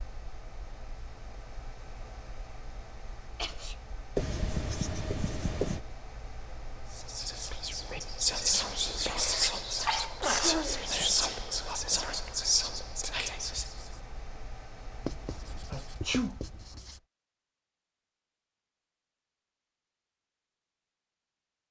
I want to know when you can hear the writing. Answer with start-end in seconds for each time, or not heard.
4.2-5.8, 15.1-17.0.